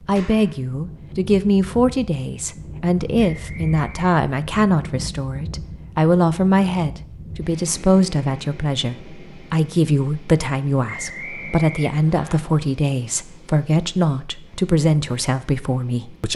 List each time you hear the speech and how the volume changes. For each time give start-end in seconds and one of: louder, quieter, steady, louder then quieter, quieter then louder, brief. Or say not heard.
0.0-16.3 steady.